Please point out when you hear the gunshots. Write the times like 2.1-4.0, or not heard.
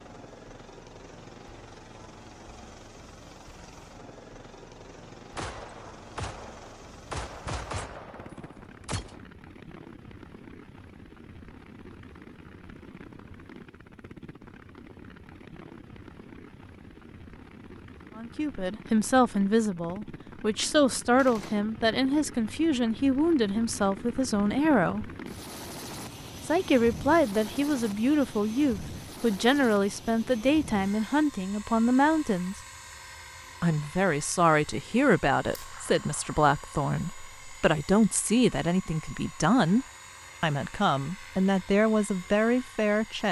5.3-9.2, 21.1-21.6, 35.5-36.4.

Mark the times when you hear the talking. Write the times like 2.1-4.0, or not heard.
18.1-25.1, 26.4-32.6, 33.6-43.2.